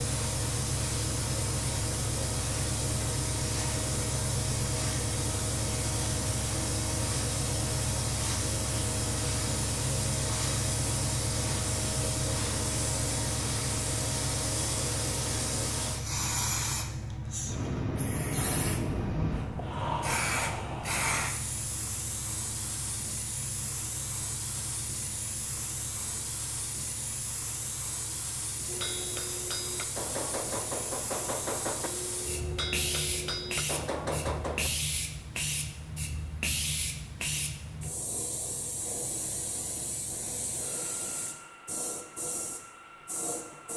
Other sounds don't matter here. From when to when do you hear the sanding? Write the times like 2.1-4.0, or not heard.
not heard.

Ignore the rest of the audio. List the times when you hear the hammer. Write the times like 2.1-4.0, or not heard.
28.6-34.7.